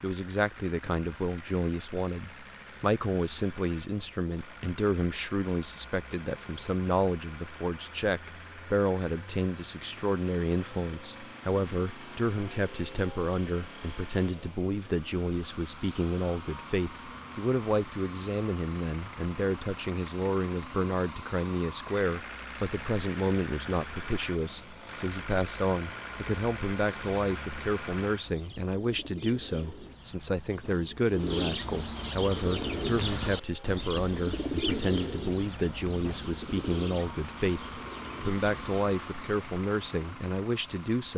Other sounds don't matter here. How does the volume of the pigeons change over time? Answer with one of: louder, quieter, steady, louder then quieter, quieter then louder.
louder then quieter.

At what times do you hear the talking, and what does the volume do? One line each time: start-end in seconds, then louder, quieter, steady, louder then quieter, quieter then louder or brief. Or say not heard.
0.0-41.1 steady.